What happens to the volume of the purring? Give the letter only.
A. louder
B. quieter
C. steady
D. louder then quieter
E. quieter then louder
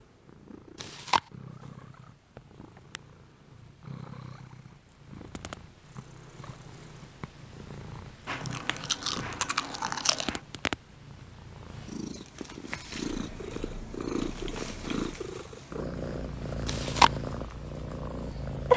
A.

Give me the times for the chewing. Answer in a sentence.
You can hear the chewing from 0.8 to 1.2 s, from 8.2 to 10.4 s and from 16.6 to 17.1 s.